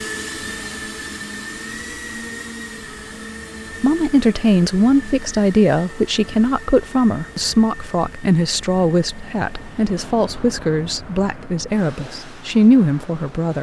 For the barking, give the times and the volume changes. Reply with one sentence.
The barking can't be heard in this clip.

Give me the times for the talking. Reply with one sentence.
You can hear the talking from 3.8 to 13.5 s.